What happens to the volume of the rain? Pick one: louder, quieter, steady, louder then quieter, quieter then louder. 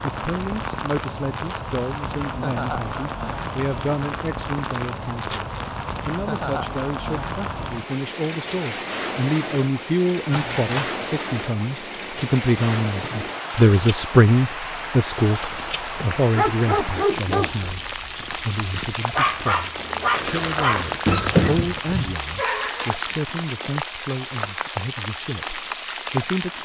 steady.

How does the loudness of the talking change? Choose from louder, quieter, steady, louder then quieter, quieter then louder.
louder then quieter.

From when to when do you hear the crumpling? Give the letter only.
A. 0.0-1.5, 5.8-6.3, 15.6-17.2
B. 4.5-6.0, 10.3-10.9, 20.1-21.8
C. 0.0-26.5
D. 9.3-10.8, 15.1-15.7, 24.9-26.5
B.